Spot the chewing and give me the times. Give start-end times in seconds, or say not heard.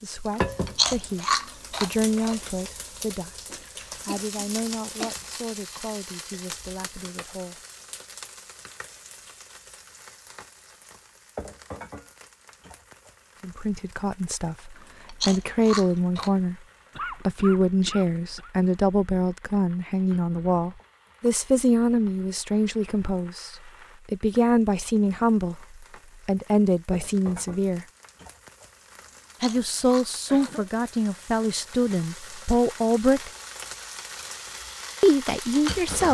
0.7-2.4, 14.8-16.3, 29.0-30.5.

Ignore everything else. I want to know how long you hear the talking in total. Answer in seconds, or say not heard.
26 s.